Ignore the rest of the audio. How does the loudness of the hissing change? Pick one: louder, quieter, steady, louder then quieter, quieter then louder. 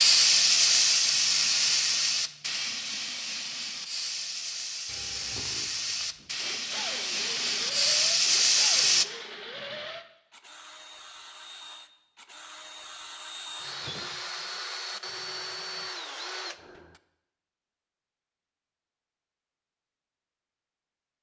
quieter then louder.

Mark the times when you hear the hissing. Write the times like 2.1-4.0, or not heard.
0.0-9.1.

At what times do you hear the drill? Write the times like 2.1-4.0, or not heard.
4.8-17.0.